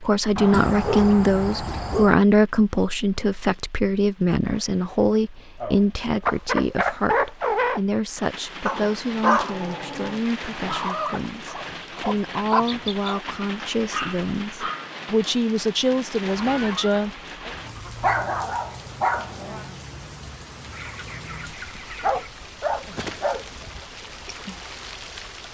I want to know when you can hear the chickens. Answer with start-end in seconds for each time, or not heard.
0.5-2.1, 6.2-7.8, 10.7-13.2, 16.3-18.1, 20.7-22.3.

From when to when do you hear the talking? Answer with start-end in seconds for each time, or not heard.
0.0-17.5.